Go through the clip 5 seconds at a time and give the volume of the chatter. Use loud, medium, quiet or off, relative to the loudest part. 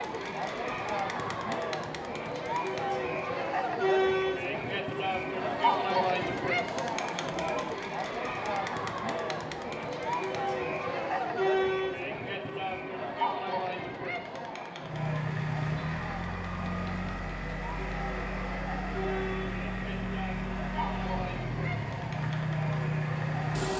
loud, loud, loud, medium, medium.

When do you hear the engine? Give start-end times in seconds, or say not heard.
14.8-23.7.